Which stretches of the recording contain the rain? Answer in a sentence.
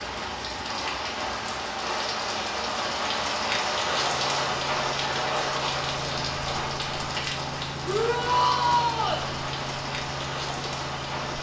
You can hear the rain from 0.0 to 11.3 s.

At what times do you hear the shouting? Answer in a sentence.
You can hear the shouting from 7.8 to 9.2 s.